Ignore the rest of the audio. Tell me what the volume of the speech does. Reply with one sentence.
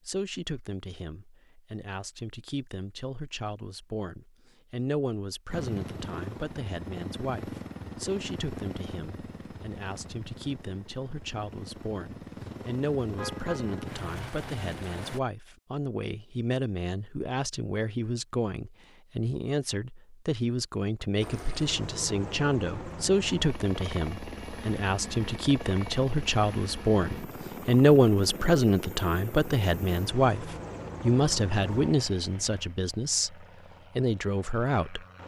The loudness of the speech goes up.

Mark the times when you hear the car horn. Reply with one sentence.
The car horn can be heard from 13.2 to 13.9 s.